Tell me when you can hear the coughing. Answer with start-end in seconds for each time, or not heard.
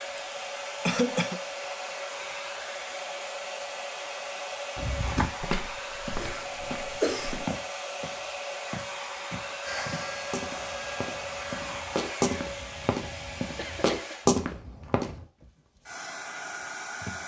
0.1-1.4, 6.2-7.5, 13.6-14.2.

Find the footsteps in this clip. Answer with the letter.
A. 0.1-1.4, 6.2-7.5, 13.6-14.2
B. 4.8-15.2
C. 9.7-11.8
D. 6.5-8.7
B.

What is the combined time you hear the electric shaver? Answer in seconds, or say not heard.
2 s.